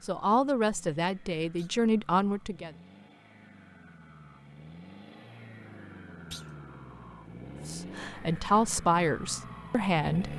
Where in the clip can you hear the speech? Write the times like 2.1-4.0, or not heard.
0.0-2.7, 7.7-10.3.